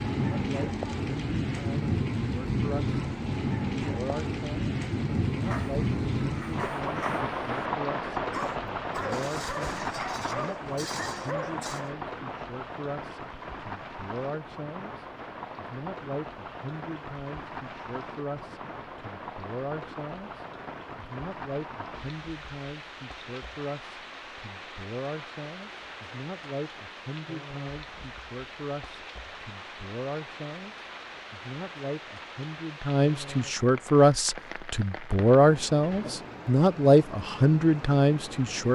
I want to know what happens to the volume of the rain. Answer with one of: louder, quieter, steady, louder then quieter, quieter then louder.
quieter.